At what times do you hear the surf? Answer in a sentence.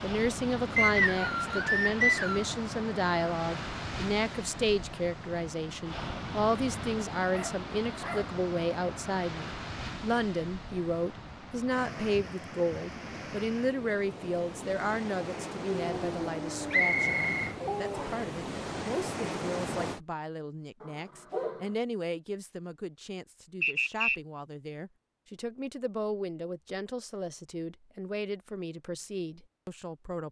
The surf can be heard from 0.0 to 20.0 s.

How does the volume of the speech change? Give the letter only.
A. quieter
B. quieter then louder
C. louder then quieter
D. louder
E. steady
A.